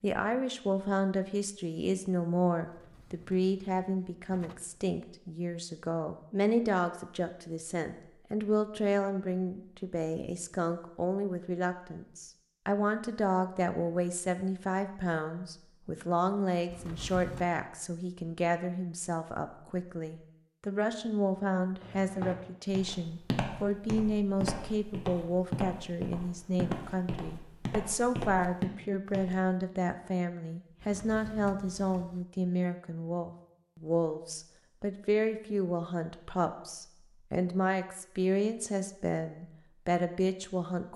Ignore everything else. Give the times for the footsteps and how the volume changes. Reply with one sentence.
The footsteps can be heard from 21.8 to 29.4 s, at a steady volume.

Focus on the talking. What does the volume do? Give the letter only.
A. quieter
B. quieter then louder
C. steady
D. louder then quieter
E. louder
C.